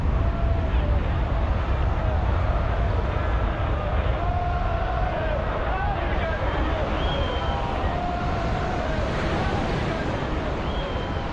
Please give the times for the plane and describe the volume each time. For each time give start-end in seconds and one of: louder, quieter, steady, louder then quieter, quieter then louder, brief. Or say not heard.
0.0-11.2 steady.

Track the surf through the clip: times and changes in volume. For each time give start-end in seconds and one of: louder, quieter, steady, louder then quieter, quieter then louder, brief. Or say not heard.
0.0-11.2 louder.